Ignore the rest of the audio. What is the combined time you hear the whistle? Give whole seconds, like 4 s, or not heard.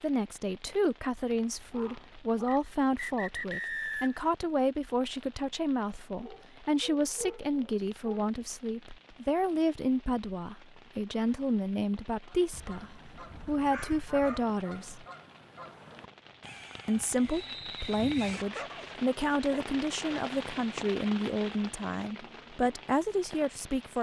3 s.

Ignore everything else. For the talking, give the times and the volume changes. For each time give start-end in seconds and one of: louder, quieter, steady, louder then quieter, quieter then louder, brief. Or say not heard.
0.0-15.1 steady
16.9-23.9 steady.